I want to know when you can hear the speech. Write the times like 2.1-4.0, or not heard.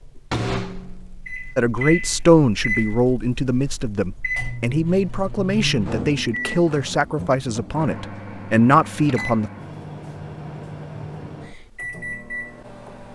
1.6-9.5.